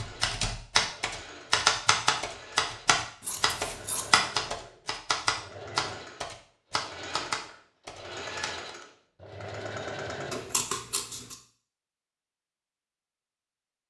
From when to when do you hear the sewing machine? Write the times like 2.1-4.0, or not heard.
0.0-10.7.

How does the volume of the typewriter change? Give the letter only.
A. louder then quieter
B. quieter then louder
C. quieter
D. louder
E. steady
C.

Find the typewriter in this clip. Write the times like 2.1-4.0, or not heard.
0.0-8.8.